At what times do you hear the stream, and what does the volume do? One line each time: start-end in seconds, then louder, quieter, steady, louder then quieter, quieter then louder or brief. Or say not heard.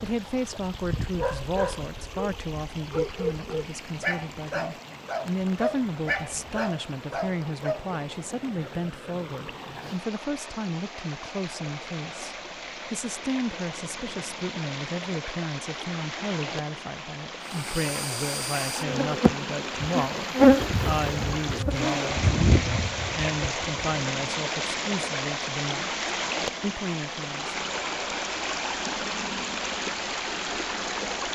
0.0-31.2 louder.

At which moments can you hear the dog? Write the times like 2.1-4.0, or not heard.
0.8-7.8.